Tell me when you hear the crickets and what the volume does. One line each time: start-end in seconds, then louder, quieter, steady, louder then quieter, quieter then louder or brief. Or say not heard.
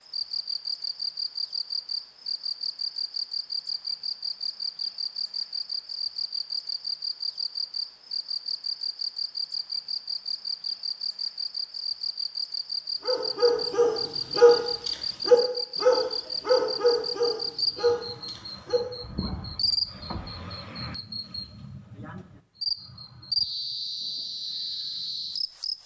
0.1-25.8 steady.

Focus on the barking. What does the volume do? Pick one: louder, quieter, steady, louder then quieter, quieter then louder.
quieter.